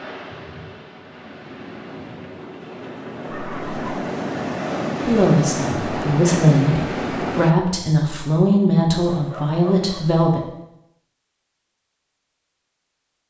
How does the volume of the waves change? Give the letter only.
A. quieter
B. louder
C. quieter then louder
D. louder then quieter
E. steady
B.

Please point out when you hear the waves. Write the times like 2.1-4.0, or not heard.
0.0-7.5.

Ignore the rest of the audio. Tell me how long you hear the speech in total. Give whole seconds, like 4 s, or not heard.
5 s.